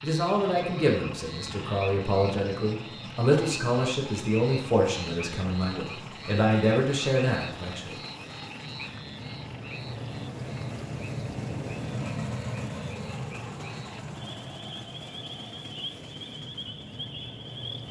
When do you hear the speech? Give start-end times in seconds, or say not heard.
0.0-8.0.